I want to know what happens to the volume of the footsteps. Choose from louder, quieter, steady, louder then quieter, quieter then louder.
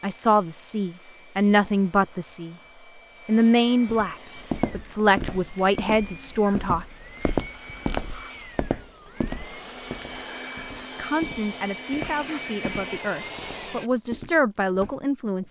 quieter.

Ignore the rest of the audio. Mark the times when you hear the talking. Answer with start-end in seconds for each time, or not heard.
0.0-2.5, 3.2-6.8, 10.9-15.4.